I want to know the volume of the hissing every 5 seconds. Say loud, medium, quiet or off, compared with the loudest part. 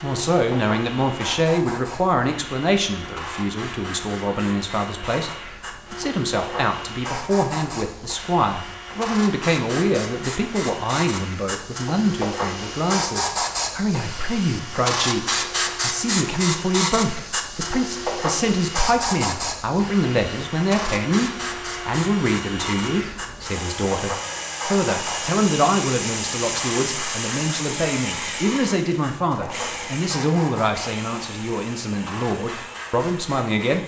medium, medium, loud, loud, medium, medium, medium.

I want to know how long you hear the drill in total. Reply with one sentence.
The drill can be heard for 34 seconds in total.